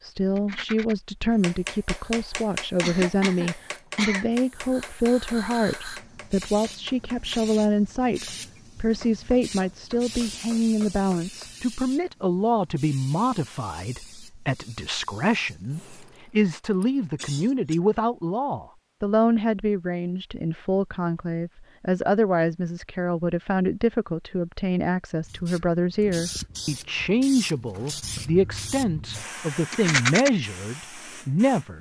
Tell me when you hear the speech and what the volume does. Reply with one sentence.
You can hear the speech from 0.0 to 31.7 s, at a steady volume.